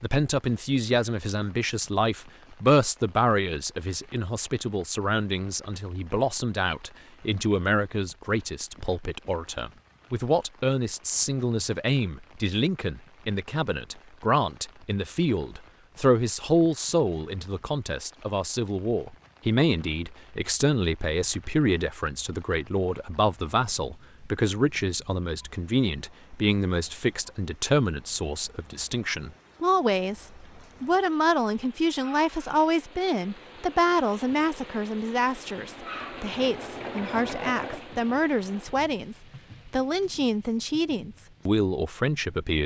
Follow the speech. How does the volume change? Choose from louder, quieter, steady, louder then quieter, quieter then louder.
steady.